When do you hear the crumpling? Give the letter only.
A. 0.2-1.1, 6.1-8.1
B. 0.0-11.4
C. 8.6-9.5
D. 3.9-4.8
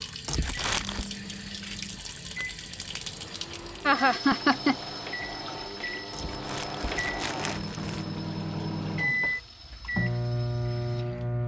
A.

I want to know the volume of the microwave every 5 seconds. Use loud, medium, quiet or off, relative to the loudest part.
quiet, loud, loud.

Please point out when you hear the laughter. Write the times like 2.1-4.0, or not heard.
3.9-4.8.